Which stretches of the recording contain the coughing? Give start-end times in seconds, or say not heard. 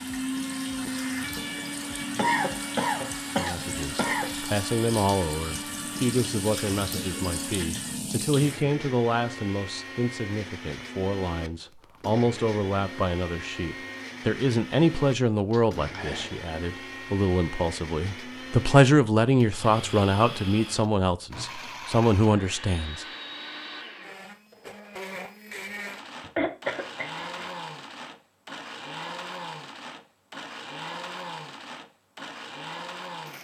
2.1-4.3, 15.5-16.4, 26.2-27.5.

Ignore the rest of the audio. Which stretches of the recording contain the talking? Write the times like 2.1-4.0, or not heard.
3.4-23.1.